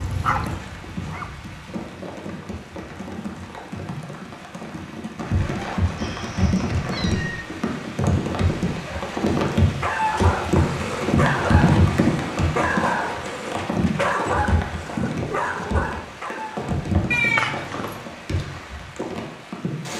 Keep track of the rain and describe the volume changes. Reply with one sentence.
The volume of the rain goes up, then down.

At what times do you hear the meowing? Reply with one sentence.
The meowing can be heard from 6.0 to 7.5 s and from 17.1 to 18.0 s.